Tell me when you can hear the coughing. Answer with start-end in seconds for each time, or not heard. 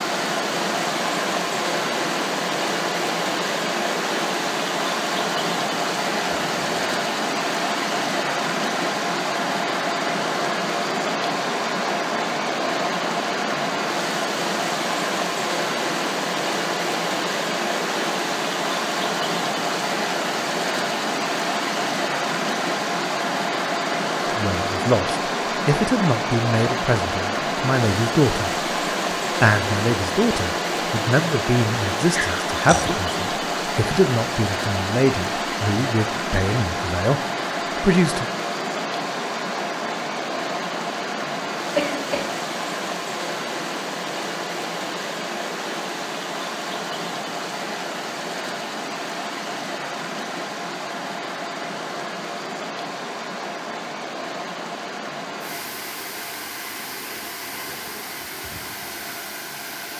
6.3-6.8, 41.8-42.4.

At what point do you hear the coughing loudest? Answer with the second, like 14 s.
42 s.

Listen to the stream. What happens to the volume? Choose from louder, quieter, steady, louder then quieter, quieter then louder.
quieter.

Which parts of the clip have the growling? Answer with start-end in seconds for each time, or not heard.
32.1-33.0.